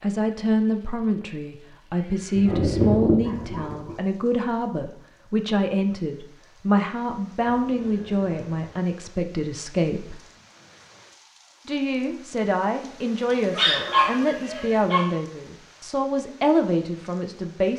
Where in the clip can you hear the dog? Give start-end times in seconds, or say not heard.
2.4-4.0, 13.3-15.1.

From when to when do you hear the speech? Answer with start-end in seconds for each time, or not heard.
0.0-10.2, 11.7-17.7.